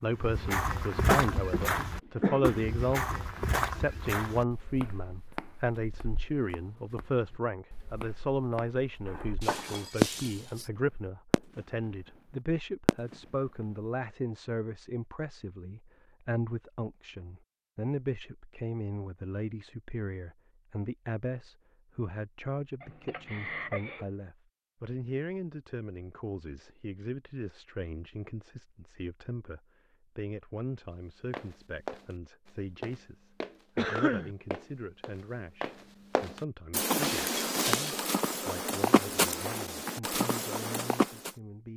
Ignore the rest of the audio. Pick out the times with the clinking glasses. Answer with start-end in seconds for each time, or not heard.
9.4-10.7, 37.0-38.1.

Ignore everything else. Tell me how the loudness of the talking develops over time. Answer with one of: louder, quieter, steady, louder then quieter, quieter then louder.
quieter.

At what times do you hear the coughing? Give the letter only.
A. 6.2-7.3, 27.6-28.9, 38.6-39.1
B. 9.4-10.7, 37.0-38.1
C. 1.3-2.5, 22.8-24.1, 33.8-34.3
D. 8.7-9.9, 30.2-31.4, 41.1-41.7
C.